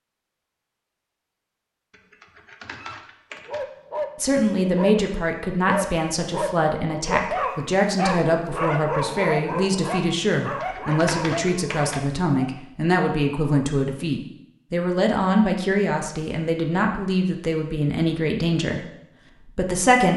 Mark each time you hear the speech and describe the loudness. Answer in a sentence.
You can hear the speech from 4.2 to 18.9 s, at a steady volume; and briefly from 19.4 to 20.1 s.